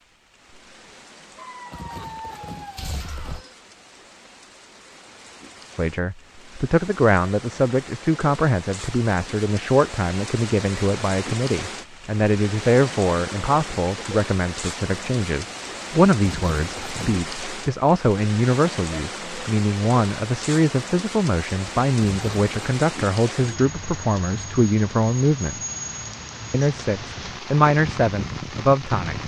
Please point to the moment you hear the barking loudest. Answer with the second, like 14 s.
2 s.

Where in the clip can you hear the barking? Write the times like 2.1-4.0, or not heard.
1.4-3.5.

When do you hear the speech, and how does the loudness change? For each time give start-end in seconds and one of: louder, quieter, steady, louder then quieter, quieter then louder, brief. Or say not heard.
5.8-25.6 steady
26.5-29.2 brief.